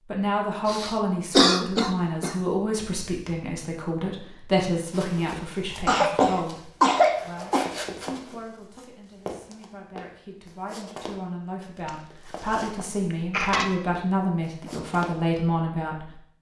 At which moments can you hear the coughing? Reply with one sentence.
You can hear the coughing from 0.7 to 2.4 s, from 5.8 to 7.8 s and from 11.8 to 13.7 s.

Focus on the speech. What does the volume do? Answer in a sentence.
The volume of the speech goes down, then up.